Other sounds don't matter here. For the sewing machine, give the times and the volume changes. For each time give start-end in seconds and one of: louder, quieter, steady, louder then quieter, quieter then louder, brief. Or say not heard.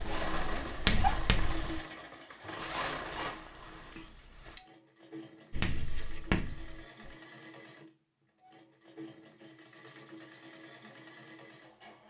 0.0-12.0 quieter.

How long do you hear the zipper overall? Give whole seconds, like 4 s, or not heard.
2 s.